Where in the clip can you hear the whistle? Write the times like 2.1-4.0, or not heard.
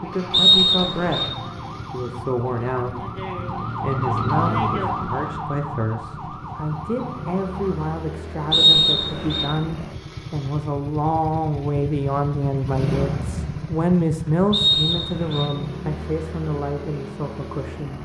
0.3-1.3, 8.5-9.4, 14.5-15.5.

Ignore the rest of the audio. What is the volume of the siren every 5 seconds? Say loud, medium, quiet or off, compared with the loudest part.
loud, medium, off, off.